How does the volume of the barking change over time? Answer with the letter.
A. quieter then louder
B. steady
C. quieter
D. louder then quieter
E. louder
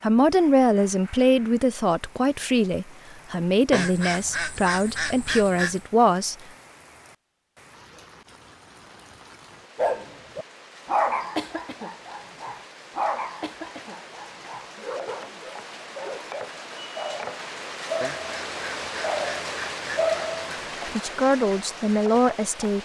A.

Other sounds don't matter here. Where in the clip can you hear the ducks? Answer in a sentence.
You can hear the ducks from 3.7 to 5.8 s and from 18.0 to 20.7 s.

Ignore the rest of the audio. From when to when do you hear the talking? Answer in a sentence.
You can hear the talking from 0.0 to 6.3 s and from 20.9 to 22.8 s.